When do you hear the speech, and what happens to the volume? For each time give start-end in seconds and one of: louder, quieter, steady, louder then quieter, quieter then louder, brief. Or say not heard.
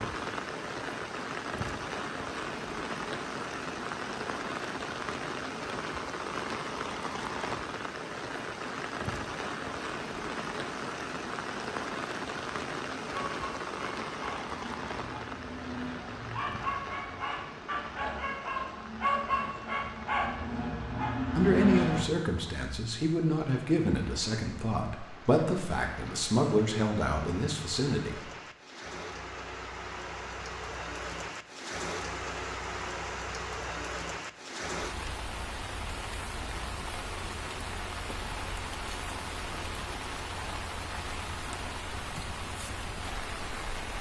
21.4-28.2 steady.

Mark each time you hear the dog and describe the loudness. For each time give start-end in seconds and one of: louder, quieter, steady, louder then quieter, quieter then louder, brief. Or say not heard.
13.3-22.1 louder.